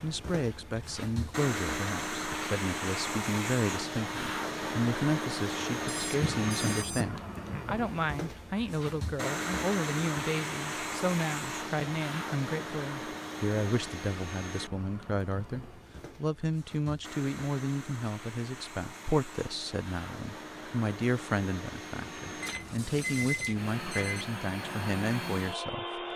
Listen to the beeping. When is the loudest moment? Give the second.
23 s.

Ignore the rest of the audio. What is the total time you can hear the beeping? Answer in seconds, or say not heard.
3 s.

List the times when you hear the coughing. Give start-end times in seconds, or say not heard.
6.2-7.7.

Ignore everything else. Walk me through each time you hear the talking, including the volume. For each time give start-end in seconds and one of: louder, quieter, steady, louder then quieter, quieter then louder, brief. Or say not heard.
0.0-26.0 steady.